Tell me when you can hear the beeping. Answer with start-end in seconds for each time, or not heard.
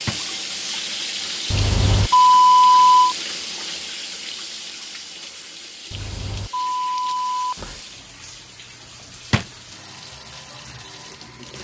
1.5-3.1, 5.9-7.8.